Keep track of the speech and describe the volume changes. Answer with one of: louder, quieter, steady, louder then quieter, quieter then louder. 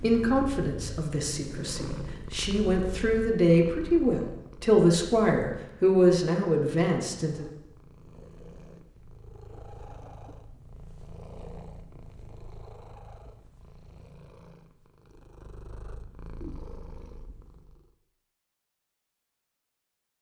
louder.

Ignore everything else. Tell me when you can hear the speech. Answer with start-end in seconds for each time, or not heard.
0.0-7.5.